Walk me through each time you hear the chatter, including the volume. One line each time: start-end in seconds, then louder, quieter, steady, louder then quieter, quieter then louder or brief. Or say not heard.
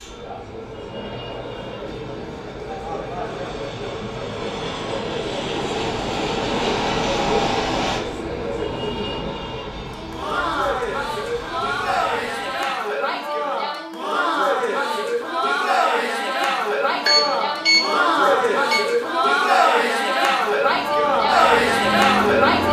0.0-22.6 louder.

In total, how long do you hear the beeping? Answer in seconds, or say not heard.
2 s.